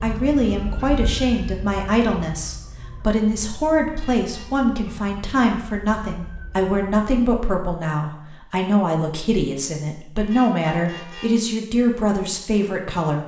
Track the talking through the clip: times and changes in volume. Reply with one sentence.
The talking can be heard from 0.0 to 13.2 s, at a steady volume.